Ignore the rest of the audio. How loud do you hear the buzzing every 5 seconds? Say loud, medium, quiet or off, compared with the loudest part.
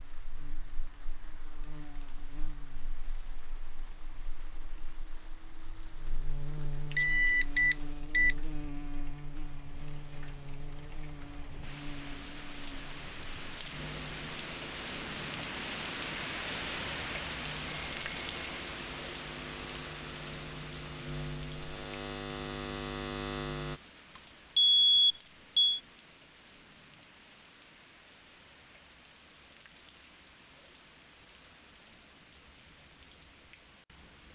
quiet, medium, medium, medium, loud, off, off.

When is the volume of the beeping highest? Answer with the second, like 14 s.
25 s.